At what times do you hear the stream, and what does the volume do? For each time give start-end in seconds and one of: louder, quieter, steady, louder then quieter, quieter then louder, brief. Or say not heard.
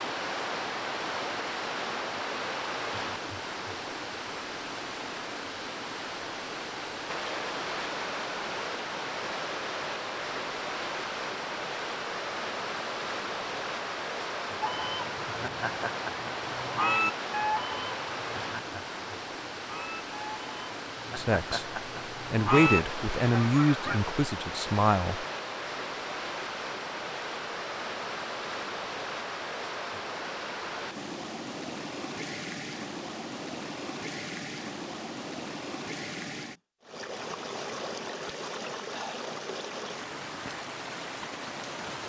0.0-42.0 steady.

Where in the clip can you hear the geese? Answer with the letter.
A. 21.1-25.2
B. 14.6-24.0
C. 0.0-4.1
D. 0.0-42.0
B.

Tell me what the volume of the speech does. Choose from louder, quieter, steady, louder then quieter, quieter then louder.
louder then quieter.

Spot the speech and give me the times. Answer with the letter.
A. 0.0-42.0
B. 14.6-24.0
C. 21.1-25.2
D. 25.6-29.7
C.